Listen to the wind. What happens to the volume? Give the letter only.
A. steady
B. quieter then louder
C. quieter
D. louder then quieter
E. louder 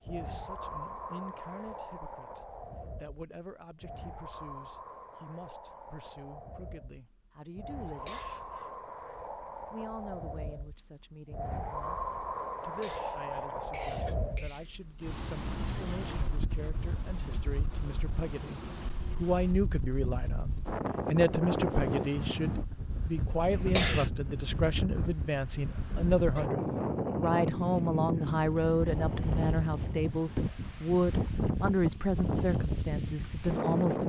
E.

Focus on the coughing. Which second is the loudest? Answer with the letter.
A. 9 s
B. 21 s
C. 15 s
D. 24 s
D.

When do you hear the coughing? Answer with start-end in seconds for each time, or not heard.
7.8-8.8, 12.6-14.7, 23.5-24.1.